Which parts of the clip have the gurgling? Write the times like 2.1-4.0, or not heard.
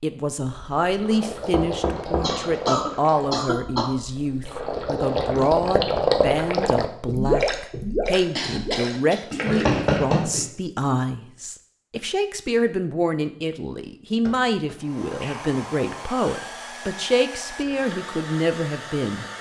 0.5-10.4.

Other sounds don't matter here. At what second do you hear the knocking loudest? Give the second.
10 s.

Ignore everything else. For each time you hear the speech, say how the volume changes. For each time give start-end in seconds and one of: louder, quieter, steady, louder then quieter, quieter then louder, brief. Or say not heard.
0.0-19.2 steady.